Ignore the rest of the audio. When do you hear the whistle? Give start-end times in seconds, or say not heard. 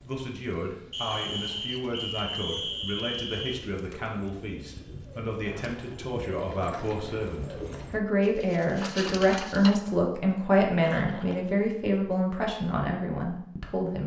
0.9-3.6.